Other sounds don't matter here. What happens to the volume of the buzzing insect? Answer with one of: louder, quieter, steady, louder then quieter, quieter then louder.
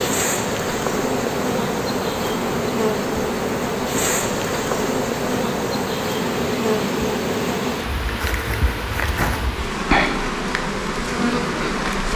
steady.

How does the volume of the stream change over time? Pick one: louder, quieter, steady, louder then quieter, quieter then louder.
steady.